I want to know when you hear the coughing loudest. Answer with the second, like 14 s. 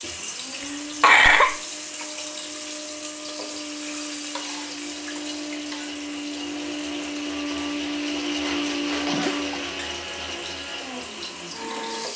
1 s.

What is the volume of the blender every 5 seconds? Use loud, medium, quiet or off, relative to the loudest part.
medium, loud, medium.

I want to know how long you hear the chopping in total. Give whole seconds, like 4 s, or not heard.
not heard.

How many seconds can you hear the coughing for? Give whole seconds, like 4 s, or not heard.
2 s.